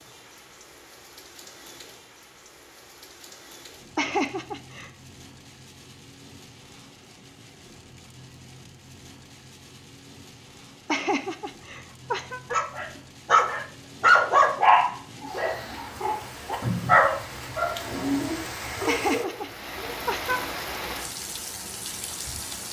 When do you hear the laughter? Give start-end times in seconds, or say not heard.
4.0-4.9, 10.8-12.4, 18.9-20.4.